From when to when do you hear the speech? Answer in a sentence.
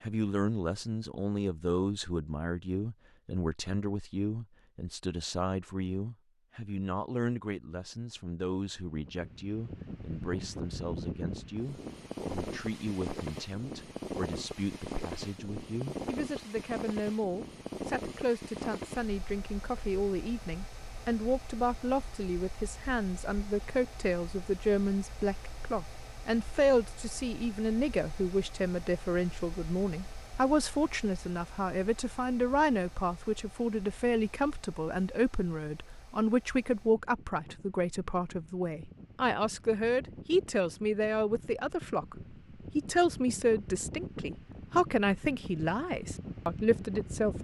The speech can be heard from 0.0 to 47.4 s.